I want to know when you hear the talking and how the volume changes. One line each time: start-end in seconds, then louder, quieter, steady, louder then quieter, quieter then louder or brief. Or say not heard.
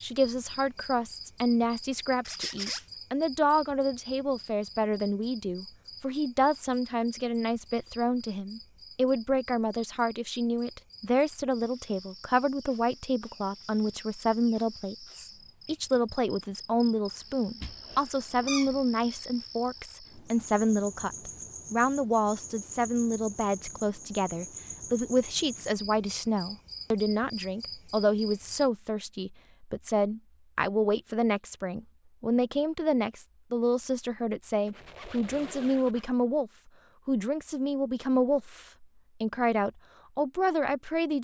0.0-41.1 steady.